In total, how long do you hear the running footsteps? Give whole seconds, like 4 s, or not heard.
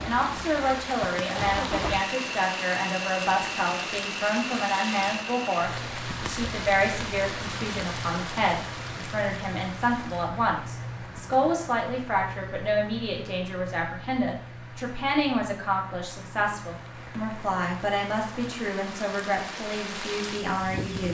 not heard.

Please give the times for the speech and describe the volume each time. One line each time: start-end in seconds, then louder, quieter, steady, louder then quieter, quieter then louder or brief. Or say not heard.
0.0-21.0 steady.